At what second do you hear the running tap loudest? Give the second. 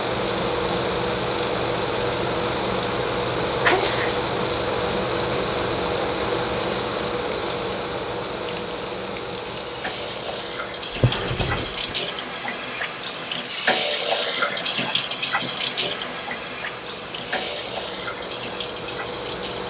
14 s.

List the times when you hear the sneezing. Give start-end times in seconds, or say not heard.
3.6-4.2.